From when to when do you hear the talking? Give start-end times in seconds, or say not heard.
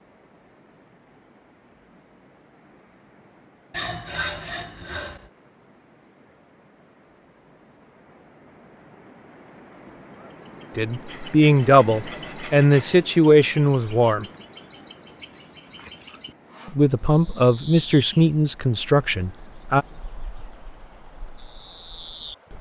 10.8-14.2, 16.6-19.9.